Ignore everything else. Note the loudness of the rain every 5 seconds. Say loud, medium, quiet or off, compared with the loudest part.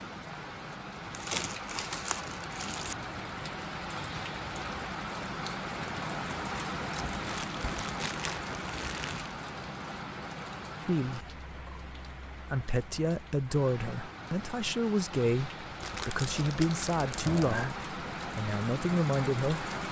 loud, loud, medium, loud.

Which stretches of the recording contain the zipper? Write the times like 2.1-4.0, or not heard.
not heard.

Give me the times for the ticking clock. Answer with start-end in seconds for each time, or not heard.
not heard.